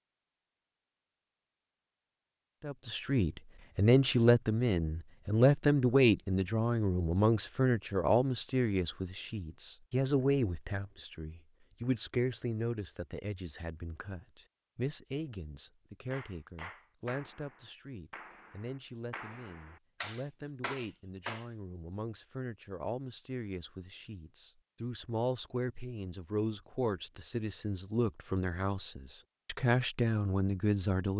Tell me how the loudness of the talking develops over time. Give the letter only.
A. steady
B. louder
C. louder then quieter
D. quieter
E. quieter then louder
E.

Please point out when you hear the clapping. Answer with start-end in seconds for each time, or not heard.
16.1-21.4.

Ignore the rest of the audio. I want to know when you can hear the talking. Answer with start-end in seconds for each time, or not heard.
2.6-31.1.